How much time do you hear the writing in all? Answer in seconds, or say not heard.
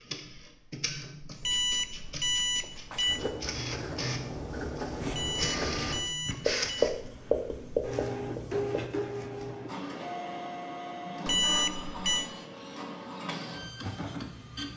6 s.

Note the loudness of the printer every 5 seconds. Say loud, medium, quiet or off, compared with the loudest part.
medium, loud, loud.